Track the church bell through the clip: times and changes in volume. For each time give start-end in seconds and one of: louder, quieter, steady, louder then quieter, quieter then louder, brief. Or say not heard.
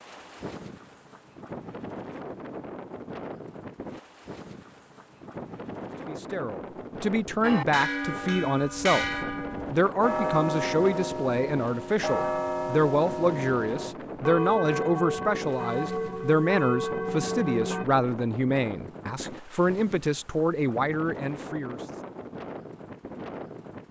7.4-17.9 steady.